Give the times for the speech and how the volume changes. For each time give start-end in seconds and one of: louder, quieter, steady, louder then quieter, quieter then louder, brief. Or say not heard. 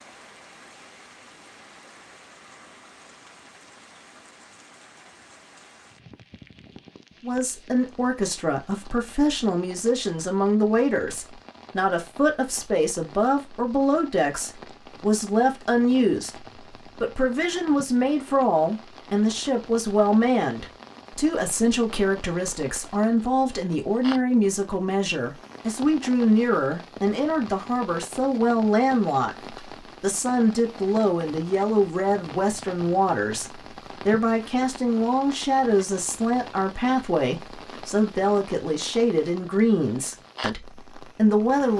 7.2-41.7 steady.